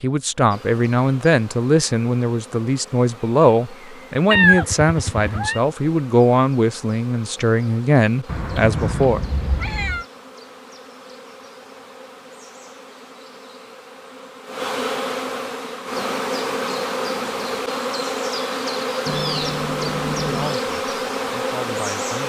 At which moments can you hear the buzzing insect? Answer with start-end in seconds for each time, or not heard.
0.1-22.2.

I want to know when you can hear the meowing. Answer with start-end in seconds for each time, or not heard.
4.3-5.6, 8.2-10.1, 19.1-20.6.